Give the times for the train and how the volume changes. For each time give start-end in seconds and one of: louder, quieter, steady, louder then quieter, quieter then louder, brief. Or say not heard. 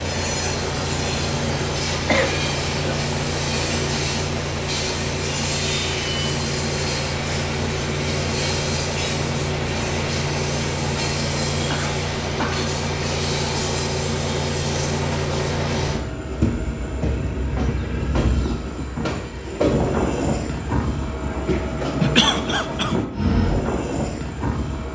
0.0-24.8 steady.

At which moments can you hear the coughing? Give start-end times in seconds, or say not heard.
2.0-3.0, 11.7-12.7, 22.0-22.9.